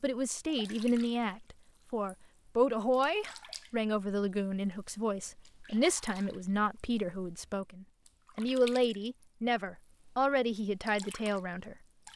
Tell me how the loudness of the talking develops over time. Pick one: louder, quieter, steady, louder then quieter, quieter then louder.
steady.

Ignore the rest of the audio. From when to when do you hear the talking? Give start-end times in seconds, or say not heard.
0.0-11.8.